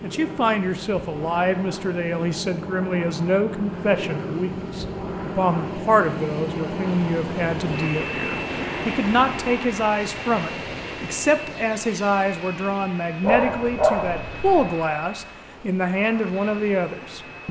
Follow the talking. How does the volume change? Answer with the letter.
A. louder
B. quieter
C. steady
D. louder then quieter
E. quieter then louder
C.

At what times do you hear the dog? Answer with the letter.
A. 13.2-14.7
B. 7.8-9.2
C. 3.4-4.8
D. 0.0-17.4
A.